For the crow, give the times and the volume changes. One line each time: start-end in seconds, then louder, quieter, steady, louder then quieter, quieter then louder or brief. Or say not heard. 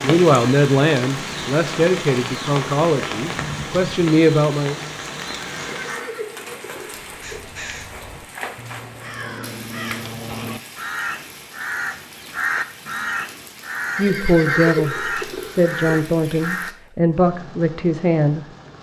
7.0-16.7 louder.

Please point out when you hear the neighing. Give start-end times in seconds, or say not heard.
5.4-7.4, 13.9-15.8.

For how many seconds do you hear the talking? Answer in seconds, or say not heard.
9 s.